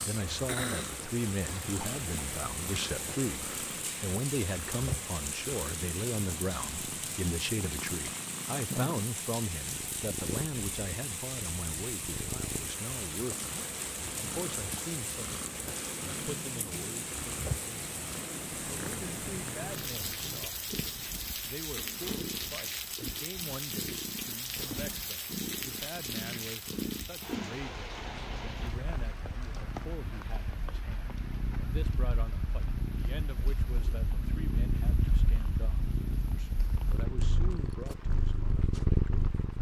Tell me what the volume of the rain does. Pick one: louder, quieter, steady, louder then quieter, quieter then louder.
quieter.